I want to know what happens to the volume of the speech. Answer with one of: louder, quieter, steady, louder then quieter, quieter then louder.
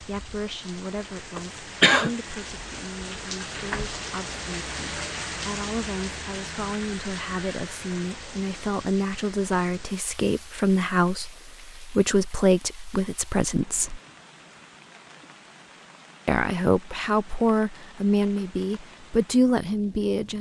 louder.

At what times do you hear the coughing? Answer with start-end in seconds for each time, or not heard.
1.4-2.1.